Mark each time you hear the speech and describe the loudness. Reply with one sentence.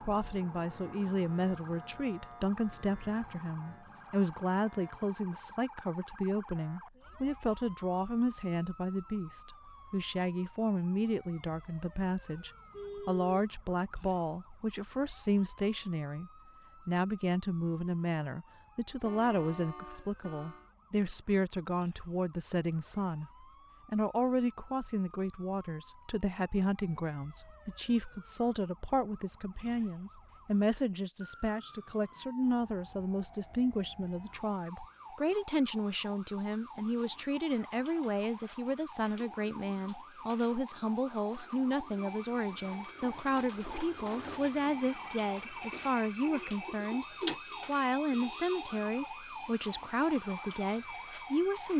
The speech can be heard from 0.0 to 47.0 s, at a steady volume; and from 47.6 to 51.7 s, at a steady volume.